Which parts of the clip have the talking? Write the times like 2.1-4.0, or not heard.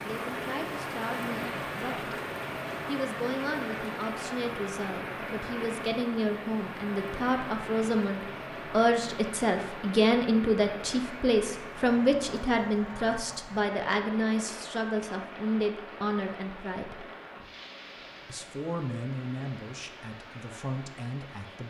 0.0-2.1, 2.9-17.1, 18.2-21.6.